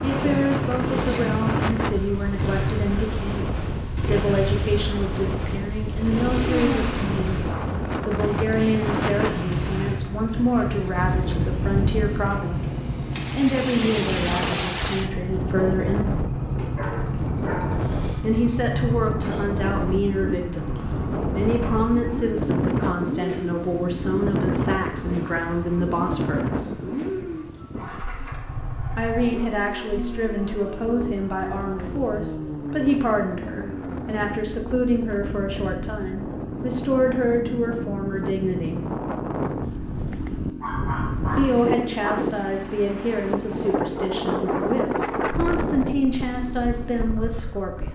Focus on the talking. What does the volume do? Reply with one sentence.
The loudness of the talking stays about the same.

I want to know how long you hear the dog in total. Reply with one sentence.
You can hear the dog for 3 seconds altogether.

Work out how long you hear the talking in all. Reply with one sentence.
You can hear the talking for 41 seconds altogether.